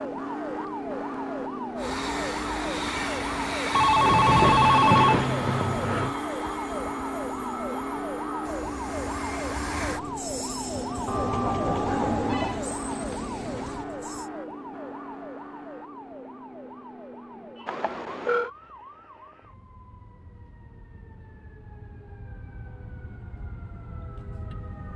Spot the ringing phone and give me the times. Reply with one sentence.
The ringing phone can be heard from 3.7 to 6.2 s, from 11.1 to 12.6 s and from 17.6 to 18.5 s.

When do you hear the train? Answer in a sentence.
You can hear the train from 1.8 to 14.3 s.